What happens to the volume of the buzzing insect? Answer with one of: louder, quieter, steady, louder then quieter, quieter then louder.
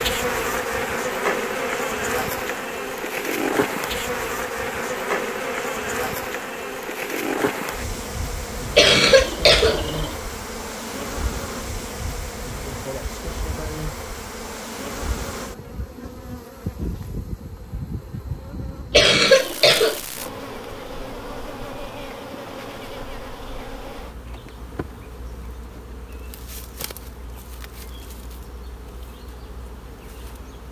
quieter.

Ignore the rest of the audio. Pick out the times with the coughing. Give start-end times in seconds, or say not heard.
8.8-10.2, 18.9-20.0.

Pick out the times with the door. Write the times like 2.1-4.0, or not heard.
not heard.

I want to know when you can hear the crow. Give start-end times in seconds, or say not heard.
not heard.